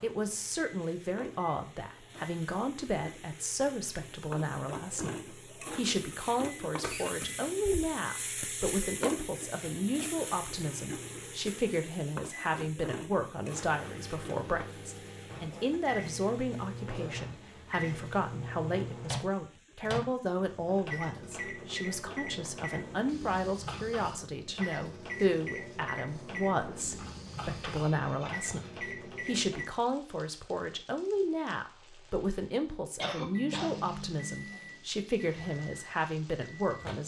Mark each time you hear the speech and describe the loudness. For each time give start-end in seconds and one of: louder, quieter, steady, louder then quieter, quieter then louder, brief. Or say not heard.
0.0-37.0 steady.